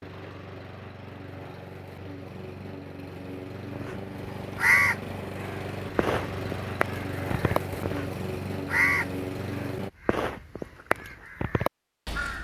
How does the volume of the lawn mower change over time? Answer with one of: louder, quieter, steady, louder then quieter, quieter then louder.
louder.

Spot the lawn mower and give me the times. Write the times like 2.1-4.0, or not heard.
0.0-9.9.